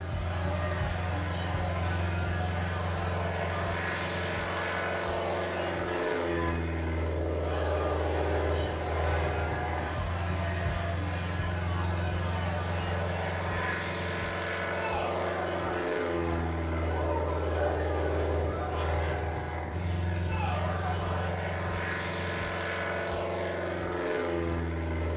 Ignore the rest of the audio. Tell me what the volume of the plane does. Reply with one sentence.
The loudness of the plane stays about the same.